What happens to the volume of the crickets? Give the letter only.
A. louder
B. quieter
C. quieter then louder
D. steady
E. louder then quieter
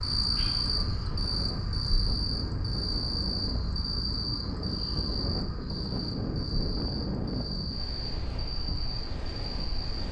B.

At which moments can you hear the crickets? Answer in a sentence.
The crickets can be heard from 0.0 to 10.0 s.